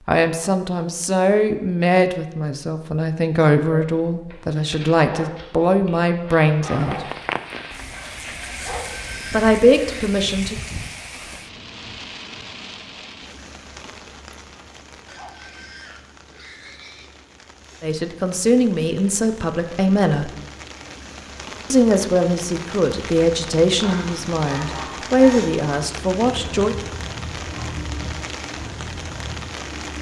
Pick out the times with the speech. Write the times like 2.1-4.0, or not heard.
0.1-7.1, 9.3-10.6, 17.8-20.3, 21.7-26.8.